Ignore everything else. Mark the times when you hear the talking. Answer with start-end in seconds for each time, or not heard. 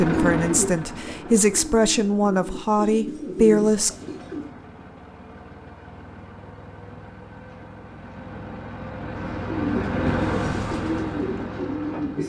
0.0-3.9.